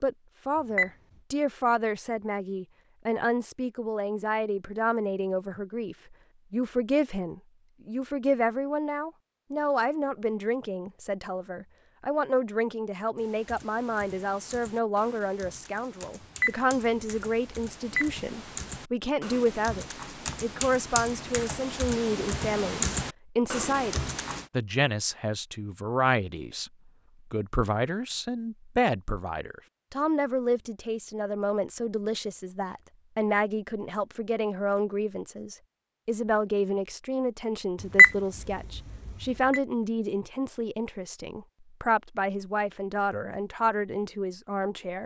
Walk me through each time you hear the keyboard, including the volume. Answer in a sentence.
You can hear the keyboard from 13.2 to 24.4 s, getting louder.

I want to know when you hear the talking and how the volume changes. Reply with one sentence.
The talking can be heard from 0.0 to 26.7 s, at a steady volume; and from 27.3 to 45.0 s, at a steady volume.